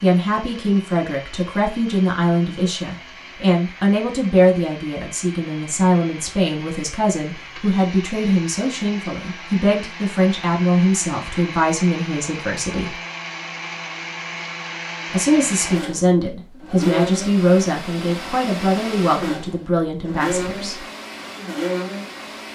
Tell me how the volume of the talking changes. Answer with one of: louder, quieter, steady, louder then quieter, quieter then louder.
steady.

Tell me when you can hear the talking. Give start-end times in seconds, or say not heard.
0.0-12.9, 15.1-20.8.